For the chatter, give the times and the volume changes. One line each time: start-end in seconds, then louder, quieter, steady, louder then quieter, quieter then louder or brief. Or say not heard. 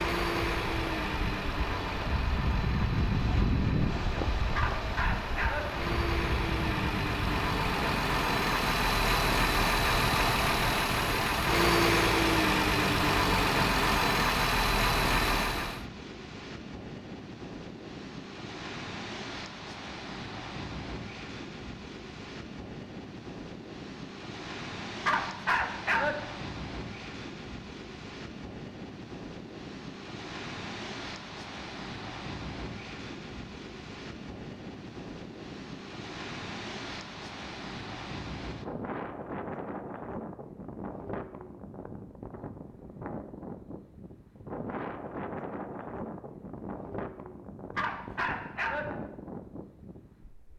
not heard.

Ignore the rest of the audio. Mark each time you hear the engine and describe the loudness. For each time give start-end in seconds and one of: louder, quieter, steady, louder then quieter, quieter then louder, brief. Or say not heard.
0.0-15.8 louder.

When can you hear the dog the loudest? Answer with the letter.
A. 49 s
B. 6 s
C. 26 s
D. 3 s
C.